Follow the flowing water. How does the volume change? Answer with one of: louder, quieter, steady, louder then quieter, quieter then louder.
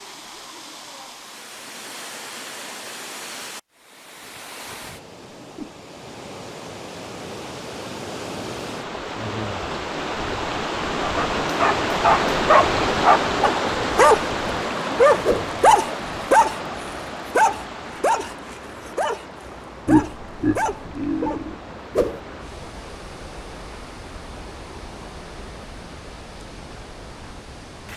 louder then quieter.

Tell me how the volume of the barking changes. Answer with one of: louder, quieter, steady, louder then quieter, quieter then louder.
louder then quieter.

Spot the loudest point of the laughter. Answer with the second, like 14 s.
20 s.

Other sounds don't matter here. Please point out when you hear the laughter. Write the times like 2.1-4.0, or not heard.
19.9-21.6.